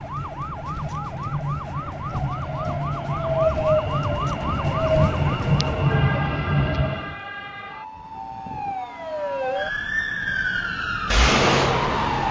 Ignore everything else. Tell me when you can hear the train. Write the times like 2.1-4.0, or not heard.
0.0-7.2.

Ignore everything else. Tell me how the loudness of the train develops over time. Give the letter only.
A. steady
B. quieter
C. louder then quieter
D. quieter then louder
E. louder
E.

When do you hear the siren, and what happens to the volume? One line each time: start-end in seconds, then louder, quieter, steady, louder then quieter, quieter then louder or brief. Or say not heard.
0.0-12.2 louder.